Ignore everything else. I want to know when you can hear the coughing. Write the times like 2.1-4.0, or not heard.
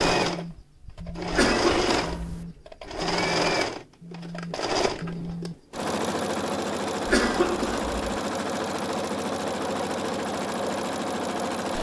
1.3-2.5, 7.0-8.0.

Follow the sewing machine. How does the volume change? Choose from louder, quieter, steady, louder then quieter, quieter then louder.
steady.